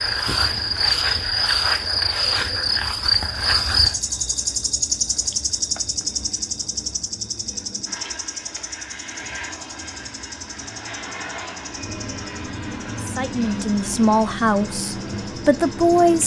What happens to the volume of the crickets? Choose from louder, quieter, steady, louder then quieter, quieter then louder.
quieter.